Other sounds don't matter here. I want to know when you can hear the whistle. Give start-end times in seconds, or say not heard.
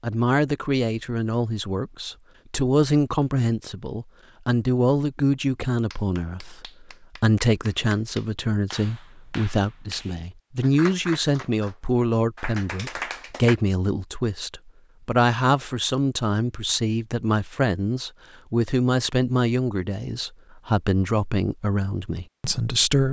not heard.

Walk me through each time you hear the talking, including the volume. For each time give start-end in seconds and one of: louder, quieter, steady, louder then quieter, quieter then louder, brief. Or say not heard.
0.0-23.0 steady.